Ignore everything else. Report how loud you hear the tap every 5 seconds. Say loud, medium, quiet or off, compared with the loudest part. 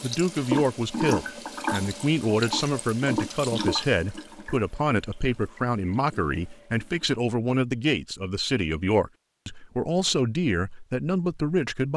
loud, quiet, off.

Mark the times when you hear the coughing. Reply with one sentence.
The coughing can't be heard in this clip.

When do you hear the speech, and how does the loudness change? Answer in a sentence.
The speech can be heard from 0.0 to 11.9 s, at a steady volume.